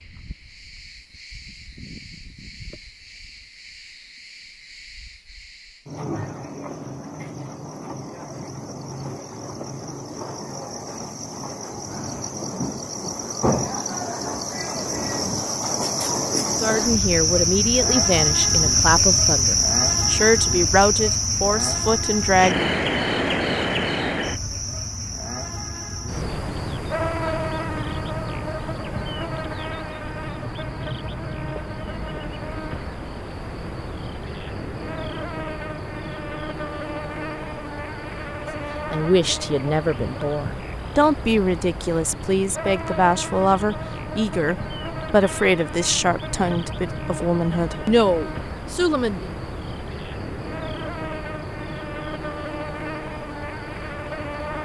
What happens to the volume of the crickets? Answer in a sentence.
The volume of the crickets goes up, then down.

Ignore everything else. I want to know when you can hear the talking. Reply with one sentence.
The talking can be heard from 16.6 to 22.7 s and from 38.9 to 49.3 s.